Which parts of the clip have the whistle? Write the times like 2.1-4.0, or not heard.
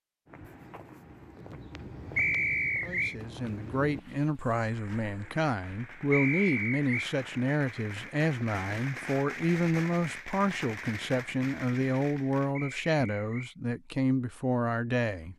2.1-3.1, 6.1-7.1, 12.6-13.6.